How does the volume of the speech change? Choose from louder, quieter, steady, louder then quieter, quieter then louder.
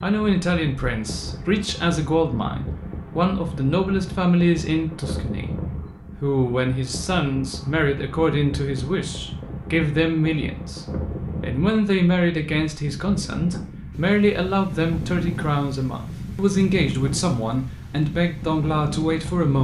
steady.